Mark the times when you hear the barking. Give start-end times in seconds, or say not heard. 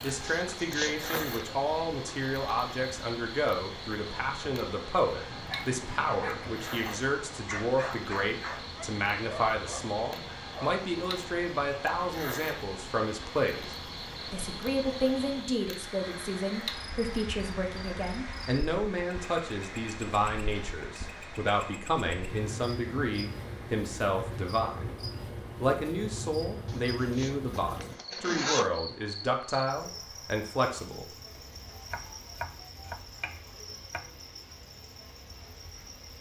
5.2-10.8.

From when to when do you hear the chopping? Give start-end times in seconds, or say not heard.
31.7-34.1.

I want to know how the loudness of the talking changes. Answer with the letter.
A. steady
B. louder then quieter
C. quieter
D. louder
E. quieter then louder
A.